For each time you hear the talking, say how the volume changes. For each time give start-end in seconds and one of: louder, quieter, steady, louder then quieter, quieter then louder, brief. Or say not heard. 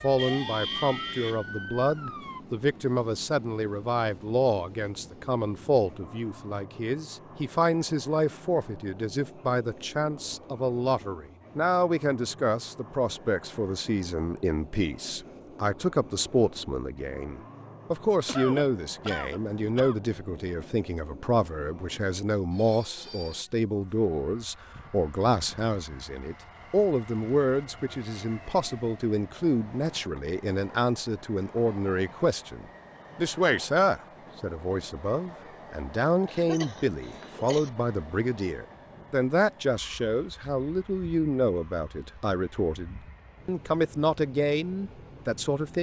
0.0-45.7 steady.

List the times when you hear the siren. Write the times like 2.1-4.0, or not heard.
0.0-2.4.